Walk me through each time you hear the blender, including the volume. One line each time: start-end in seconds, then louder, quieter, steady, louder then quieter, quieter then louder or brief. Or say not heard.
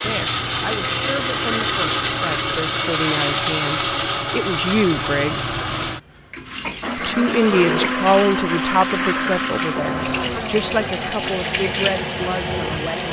0.0-13.0 quieter.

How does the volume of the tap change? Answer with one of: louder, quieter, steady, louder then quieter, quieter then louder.
louder.